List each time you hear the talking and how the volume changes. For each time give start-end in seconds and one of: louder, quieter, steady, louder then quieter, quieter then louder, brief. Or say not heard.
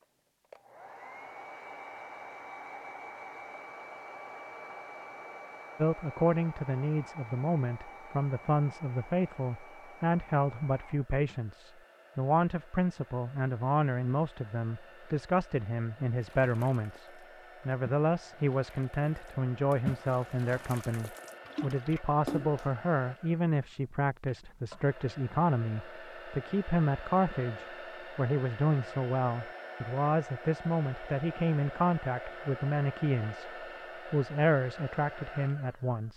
5.8-17.1 steady
17.6-36.1 steady.